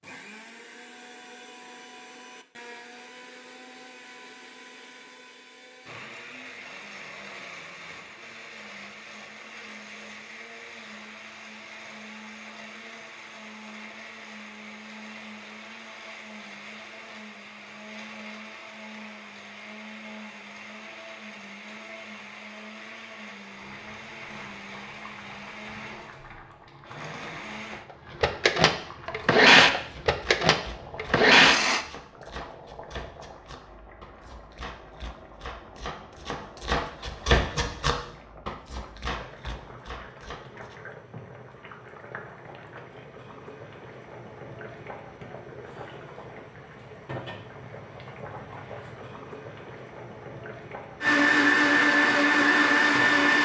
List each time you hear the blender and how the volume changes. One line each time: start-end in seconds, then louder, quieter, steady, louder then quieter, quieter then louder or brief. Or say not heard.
0.0-31.9 louder
51.0-53.4 brief.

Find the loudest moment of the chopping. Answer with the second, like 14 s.
37 s.